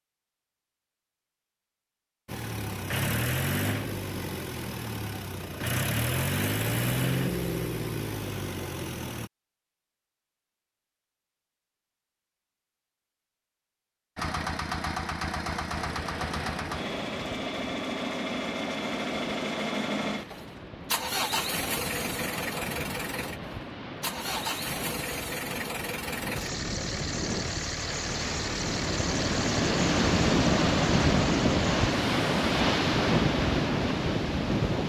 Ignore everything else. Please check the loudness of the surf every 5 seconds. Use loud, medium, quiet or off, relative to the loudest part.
off, off, off, quiet, quiet, medium, loud.